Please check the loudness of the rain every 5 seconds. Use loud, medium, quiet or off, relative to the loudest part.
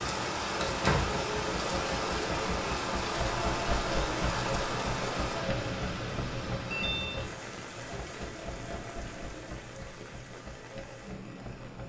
loud, medium, quiet.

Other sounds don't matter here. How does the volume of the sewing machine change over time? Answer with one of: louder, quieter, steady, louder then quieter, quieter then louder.
quieter.